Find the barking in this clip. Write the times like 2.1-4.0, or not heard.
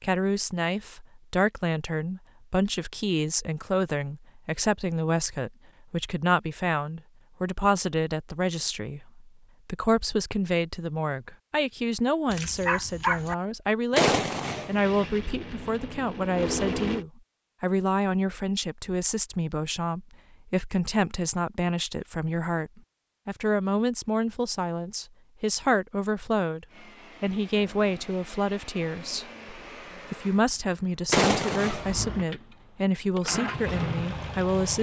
12.2-13.3.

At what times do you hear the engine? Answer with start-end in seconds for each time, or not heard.
14.7-17.1, 26.6-34.7.